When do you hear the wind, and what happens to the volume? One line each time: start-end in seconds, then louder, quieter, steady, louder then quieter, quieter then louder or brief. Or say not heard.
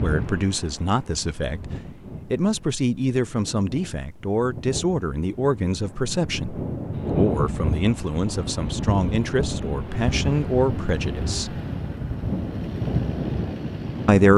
0.0-14.3 louder.